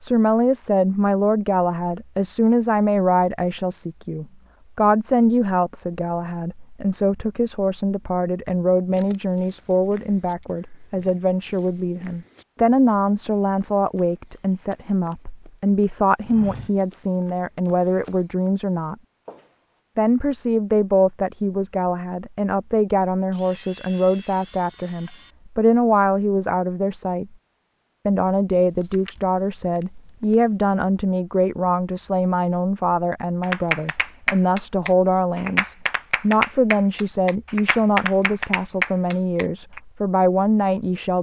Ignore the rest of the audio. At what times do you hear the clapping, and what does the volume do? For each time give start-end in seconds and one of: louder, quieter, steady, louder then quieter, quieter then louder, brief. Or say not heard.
33.4-39.8 steady.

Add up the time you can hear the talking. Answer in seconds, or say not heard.
39 s.